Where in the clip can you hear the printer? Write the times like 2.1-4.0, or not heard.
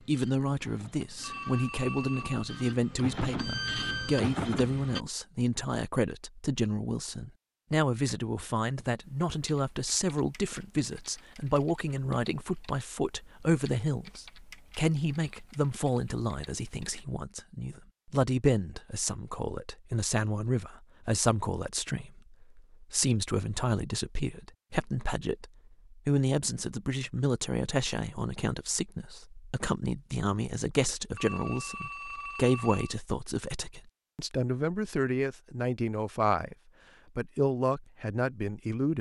0.0-5.0.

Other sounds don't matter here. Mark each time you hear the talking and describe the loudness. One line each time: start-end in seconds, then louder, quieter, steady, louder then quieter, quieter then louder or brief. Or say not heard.
0.1-36.5 steady
37.1-38.9 brief.